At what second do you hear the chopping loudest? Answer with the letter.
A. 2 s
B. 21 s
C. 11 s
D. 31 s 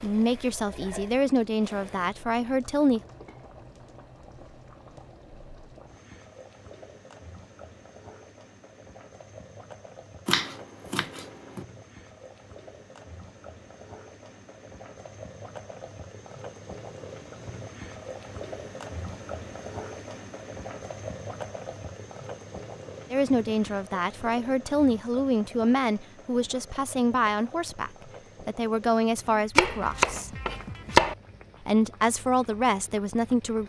D.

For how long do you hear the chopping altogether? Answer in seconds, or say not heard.
3 s.